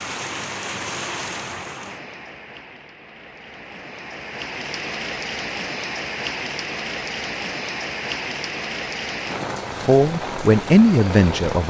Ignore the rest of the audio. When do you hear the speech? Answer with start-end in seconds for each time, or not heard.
9.8-11.6.